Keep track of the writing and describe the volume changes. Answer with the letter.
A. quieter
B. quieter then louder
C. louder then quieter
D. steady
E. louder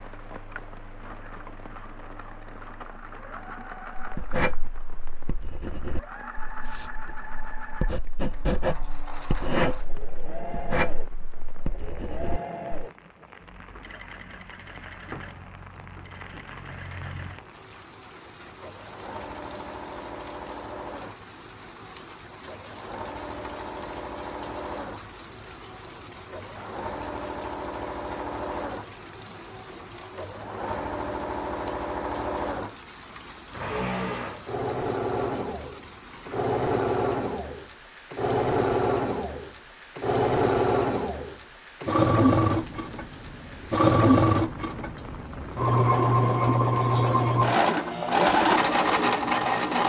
B.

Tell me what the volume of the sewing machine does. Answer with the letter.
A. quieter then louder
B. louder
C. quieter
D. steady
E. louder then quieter
B.